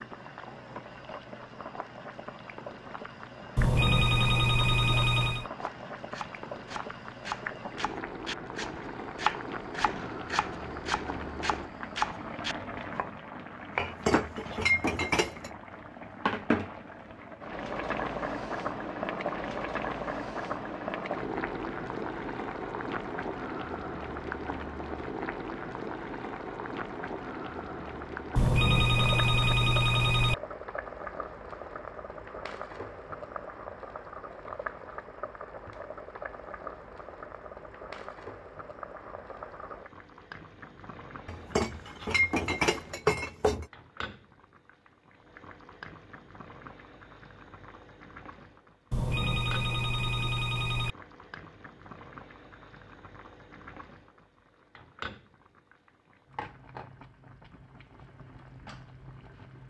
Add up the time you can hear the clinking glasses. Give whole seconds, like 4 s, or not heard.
4 s.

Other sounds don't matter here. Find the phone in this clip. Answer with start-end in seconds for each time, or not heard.
3.5-5.5, 28.4-30.4, 48.9-51.0.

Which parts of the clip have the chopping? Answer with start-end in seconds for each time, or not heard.
5.5-14.6.